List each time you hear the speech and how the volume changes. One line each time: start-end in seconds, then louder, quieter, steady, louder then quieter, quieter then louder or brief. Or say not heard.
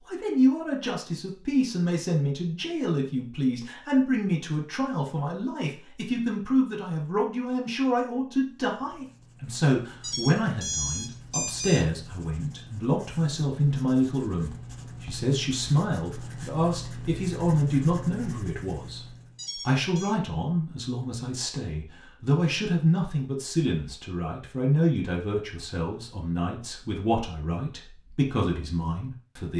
0.1-29.5 steady.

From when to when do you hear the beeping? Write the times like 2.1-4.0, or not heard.
10.0-11.8, 19.4-20.1.